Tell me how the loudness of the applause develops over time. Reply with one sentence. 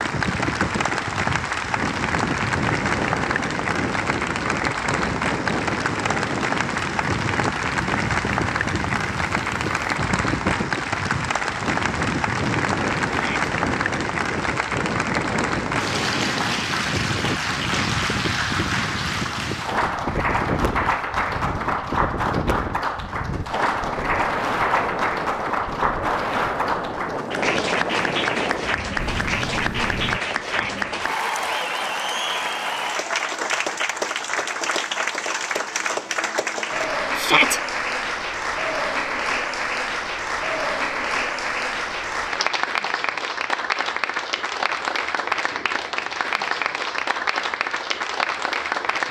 The loudness of the applause stays about the same.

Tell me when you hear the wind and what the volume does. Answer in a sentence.
The wind can be heard from 0.0 to 30.2 s, at a steady volume.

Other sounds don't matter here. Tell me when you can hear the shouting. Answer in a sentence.
You can hear the shouting from 13.1 to 13.5 s, from 30.4 to 30.9 s and from 37.1 to 37.6 s.